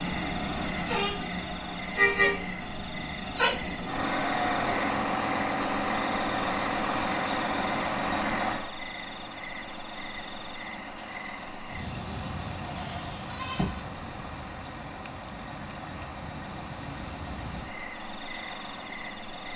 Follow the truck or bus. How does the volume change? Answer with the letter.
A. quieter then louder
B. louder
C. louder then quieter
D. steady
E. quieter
E.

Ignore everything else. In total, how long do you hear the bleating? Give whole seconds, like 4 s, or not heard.
3 s.